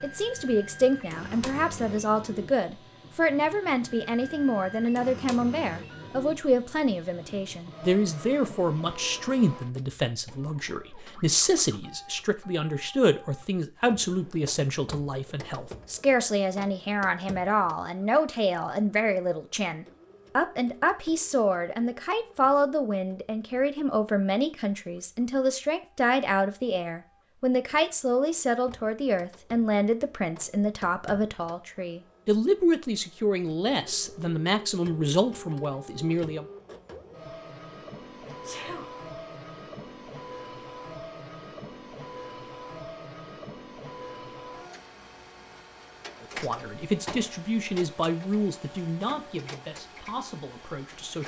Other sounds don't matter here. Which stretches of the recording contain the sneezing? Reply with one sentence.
You can hear the sneezing from 38.2 to 38.9 s.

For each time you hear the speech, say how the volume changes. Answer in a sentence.
You can hear the speech from 0.0 to 36.5 s, at a steady volume; and from 46.2 to 51.2 s, getting quieter.